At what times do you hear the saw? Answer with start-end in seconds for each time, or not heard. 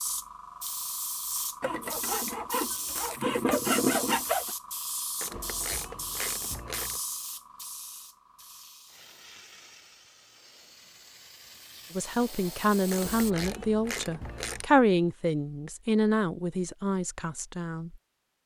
1.6-4.5.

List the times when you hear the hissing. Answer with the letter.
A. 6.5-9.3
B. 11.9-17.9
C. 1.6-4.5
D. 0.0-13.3
D.